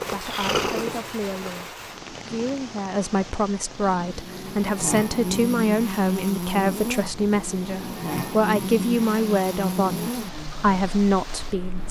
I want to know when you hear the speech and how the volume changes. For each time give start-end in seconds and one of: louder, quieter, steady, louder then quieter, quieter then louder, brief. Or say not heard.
0.0-11.8 louder.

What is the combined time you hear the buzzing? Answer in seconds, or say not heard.
8 s.